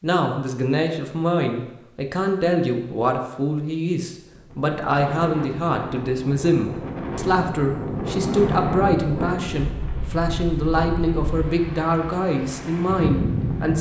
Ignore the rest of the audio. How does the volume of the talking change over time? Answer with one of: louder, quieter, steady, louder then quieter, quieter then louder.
steady.